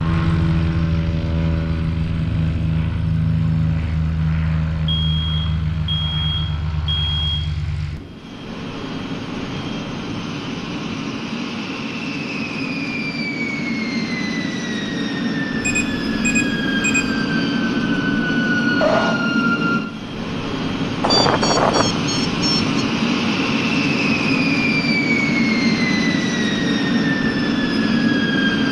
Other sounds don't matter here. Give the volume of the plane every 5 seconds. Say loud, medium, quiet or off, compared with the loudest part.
loud, medium, medium, loud, loud, loud.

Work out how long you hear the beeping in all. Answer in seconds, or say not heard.
6 s.